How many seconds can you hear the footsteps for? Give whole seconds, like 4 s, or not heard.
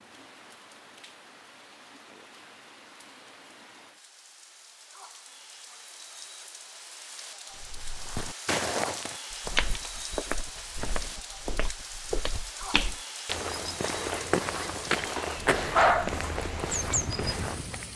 10 s.